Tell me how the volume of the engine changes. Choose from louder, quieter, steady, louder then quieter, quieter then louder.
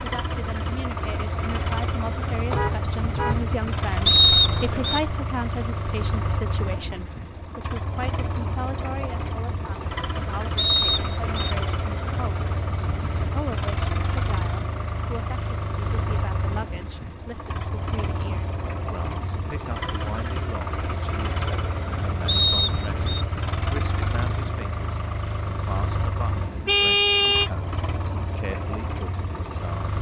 steady.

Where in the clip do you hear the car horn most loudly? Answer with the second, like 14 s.
27 s.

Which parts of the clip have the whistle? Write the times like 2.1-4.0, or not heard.
4.0-5.0, 10.6-11.6, 22.2-23.2.